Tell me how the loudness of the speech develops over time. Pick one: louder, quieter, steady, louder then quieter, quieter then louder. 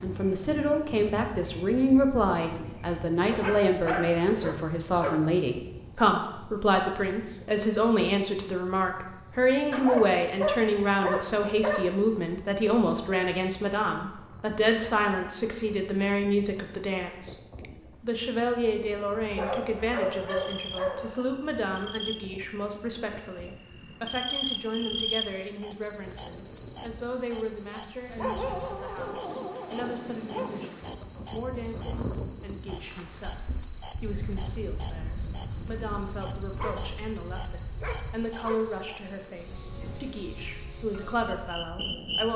quieter.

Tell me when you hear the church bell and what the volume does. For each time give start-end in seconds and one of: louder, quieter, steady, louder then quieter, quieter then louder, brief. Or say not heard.
not heard.